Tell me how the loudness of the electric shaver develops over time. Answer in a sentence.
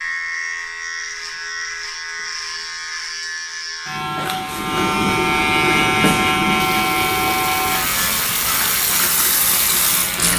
The volume of the electric shaver goes up, then down.